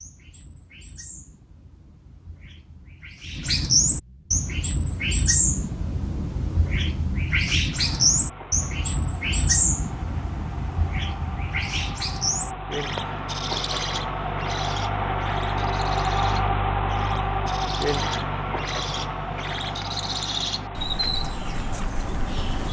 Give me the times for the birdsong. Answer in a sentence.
You can hear the birdsong from 0.0 to 22.6 s.